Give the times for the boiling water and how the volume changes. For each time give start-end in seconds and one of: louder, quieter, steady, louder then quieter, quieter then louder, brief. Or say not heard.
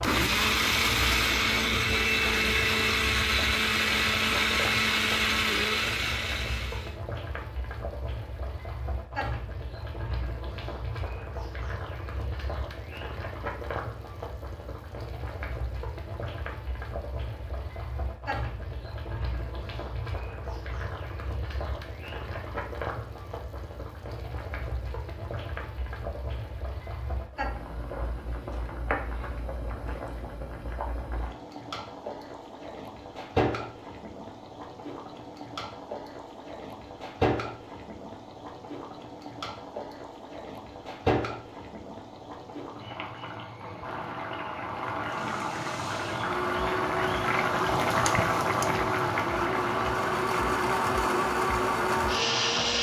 0.0-52.7 louder.